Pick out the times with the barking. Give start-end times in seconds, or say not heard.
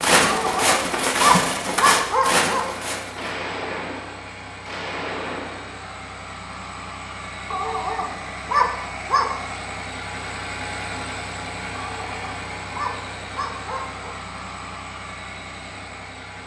0.2-2.7, 7.5-9.3, 11.8-14.2.